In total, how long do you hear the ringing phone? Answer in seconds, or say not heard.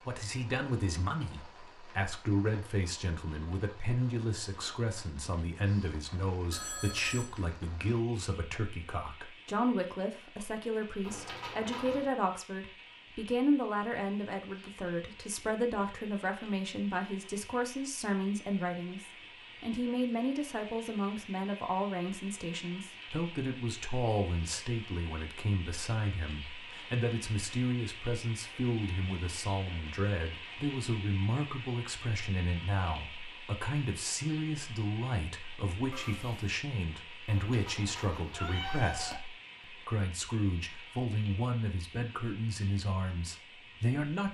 2 s.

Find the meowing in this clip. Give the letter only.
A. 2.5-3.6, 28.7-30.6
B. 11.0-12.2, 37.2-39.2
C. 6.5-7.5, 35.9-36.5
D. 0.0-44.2
B.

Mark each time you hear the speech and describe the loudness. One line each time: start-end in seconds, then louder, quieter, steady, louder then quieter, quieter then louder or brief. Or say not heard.
0.0-44.2 steady.